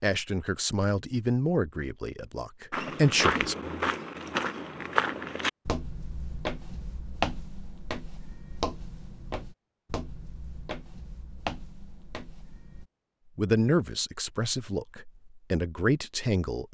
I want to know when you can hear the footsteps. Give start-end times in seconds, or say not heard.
2.7-12.8.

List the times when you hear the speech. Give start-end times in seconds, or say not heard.
0.0-3.5, 13.3-16.7.